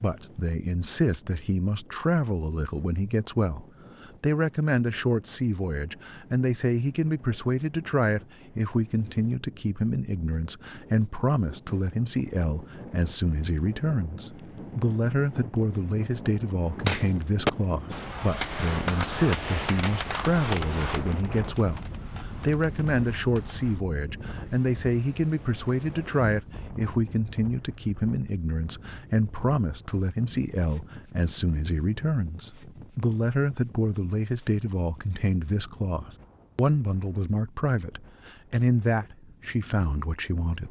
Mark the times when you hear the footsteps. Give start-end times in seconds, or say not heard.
not heard.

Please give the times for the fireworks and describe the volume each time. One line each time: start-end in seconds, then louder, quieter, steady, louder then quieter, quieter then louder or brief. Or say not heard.
16.6-23.8 quieter.